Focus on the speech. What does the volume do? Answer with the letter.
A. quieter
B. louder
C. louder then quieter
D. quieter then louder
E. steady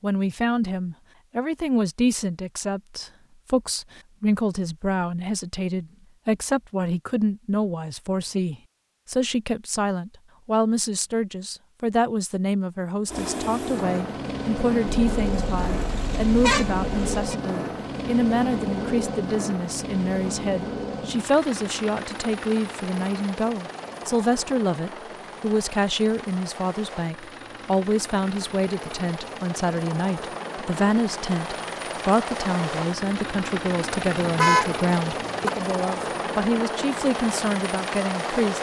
E.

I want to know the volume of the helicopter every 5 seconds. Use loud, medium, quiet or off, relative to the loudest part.
off, off, loud, loud, medium, medium, loud, loud.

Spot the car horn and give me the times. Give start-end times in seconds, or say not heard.
15.1-17.4, 34.2-35.5.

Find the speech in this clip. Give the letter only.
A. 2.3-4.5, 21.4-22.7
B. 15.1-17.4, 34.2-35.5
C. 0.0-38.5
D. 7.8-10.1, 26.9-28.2
C.